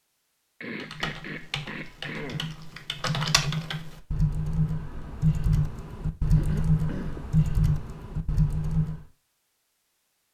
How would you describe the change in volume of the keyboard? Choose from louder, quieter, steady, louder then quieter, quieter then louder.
louder.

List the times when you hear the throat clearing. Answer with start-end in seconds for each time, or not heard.
0.6-2.5, 6.3-7.3.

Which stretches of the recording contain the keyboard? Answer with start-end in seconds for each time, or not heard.
0.8-9.1.